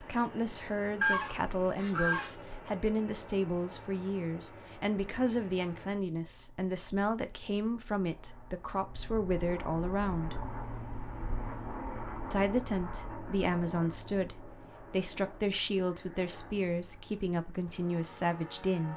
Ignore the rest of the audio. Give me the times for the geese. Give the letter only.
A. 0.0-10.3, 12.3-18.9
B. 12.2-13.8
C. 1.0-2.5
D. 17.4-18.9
C.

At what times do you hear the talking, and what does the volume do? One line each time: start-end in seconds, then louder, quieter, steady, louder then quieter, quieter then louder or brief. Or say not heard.
0.0-10.3 steady
12.3-18.9 steady.